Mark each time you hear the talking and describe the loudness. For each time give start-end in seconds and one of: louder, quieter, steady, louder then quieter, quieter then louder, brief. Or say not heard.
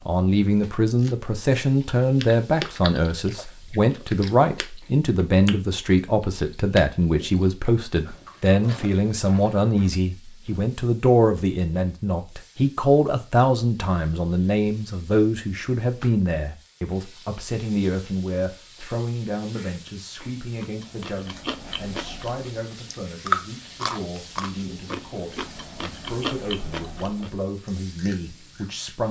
0.1-29.0 quieter.